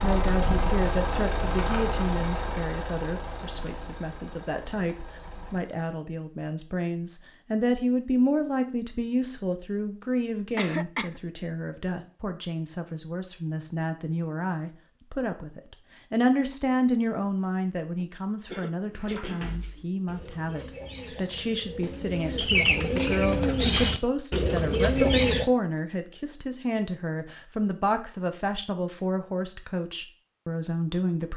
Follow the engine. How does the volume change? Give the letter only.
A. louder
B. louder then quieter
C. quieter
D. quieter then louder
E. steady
C.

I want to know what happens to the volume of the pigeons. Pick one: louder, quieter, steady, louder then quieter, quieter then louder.
louder.